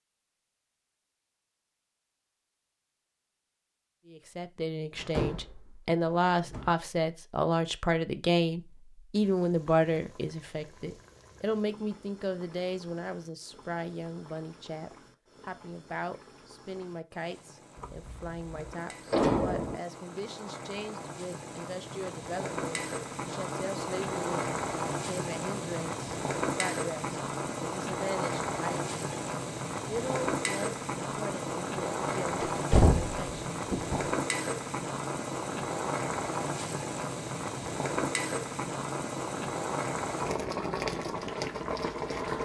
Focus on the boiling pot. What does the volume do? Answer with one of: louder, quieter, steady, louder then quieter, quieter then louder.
louder.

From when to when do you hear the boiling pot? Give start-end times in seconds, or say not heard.
9.1-42.4.